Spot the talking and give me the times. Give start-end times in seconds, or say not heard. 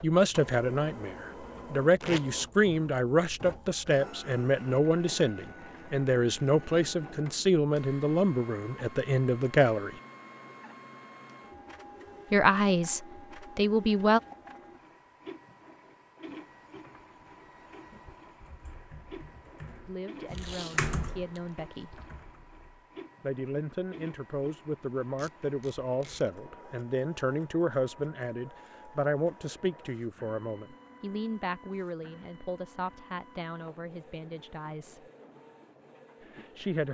0.0-9.9, 12.3-14.2, 19.9-22.0, 23.2-35.0, 36.2-36.8.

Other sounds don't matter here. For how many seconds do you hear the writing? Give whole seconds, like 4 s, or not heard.
not heard.